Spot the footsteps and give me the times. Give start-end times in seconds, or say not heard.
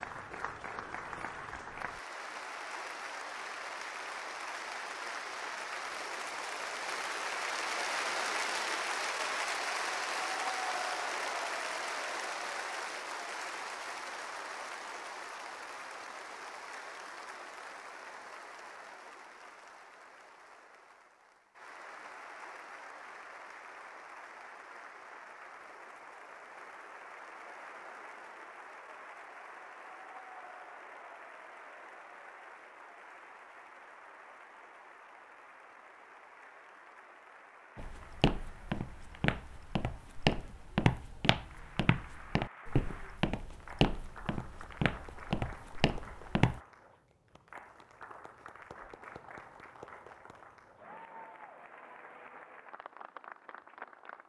37.8-46.6.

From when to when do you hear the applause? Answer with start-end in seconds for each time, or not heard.
0.0-54.2.